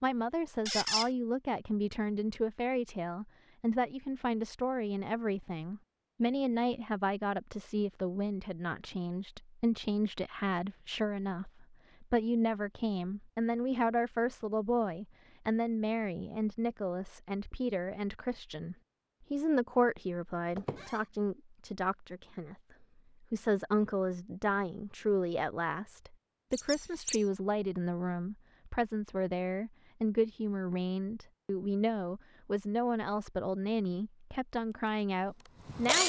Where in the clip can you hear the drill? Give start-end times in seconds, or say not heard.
34.7-36.0.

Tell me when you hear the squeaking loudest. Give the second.
1 s.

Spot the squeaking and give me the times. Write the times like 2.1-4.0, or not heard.
0.7-1.1, 20.6-21.0, 26.5-27.2.